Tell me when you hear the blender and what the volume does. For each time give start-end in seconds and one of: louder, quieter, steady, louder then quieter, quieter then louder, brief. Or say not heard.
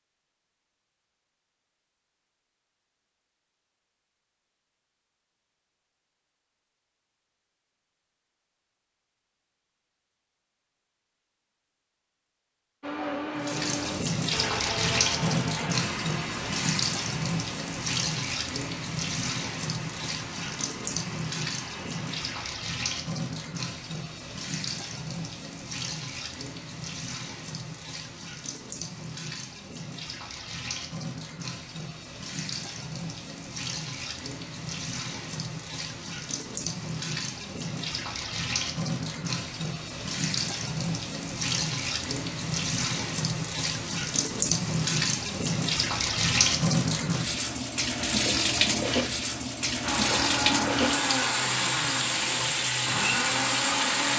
12.8-22.6 quieter
49.8-54.1 quieter then louder.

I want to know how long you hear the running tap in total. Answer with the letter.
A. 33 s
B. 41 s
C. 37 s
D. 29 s
B.